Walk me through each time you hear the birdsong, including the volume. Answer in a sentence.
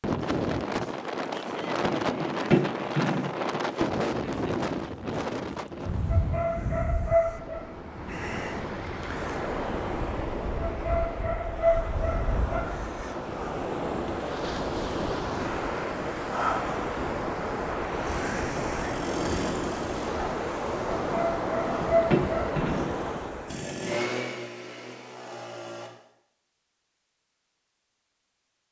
You can't hear the birdsong here.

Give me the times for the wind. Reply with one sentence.
The wind can be heard from 0.0 to 23.6 s.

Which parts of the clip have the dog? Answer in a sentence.
The dog can be heard from 6.1 to 7.7 s, from 10.6 to 12.6 s and from 21.0 to 22.6 s.